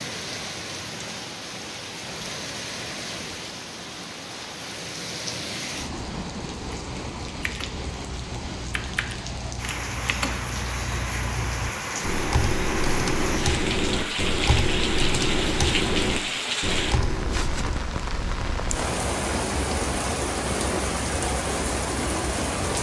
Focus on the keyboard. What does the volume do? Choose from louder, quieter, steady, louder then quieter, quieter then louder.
louder.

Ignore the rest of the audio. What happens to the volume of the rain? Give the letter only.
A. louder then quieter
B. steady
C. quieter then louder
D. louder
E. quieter
D.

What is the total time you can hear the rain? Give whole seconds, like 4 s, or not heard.
23 s.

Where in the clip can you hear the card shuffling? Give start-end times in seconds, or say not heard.
not heard.